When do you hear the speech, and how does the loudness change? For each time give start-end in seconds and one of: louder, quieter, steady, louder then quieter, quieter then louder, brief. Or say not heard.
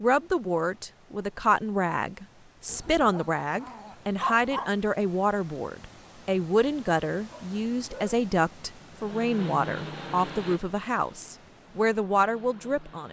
0.0-13.0 steady.